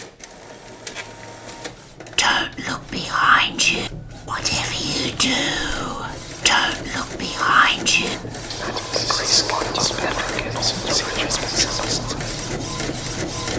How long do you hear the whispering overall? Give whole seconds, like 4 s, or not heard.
10 s.